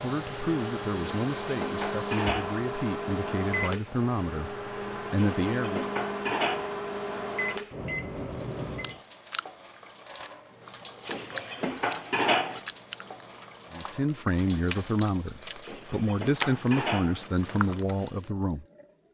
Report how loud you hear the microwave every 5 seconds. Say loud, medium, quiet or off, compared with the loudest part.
loud, loud, off, off.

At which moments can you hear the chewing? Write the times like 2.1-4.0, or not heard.
8.8-18.1.